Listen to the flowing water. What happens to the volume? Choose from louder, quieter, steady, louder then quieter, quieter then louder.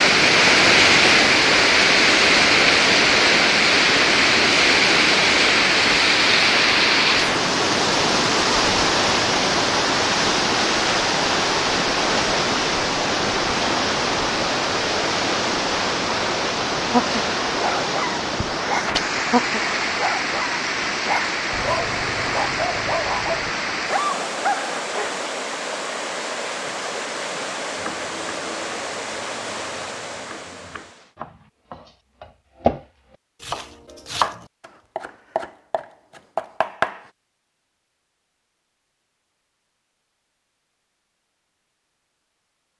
quieter.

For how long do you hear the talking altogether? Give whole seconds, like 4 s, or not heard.
not heard.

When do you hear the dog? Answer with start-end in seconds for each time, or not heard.
16.9-25.1.